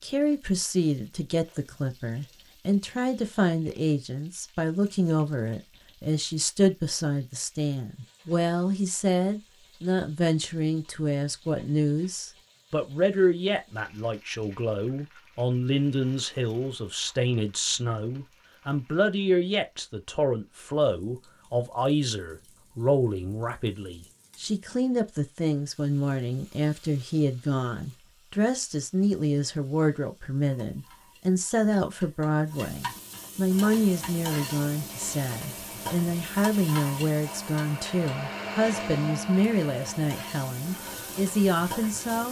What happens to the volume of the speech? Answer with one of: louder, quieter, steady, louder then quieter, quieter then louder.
steady.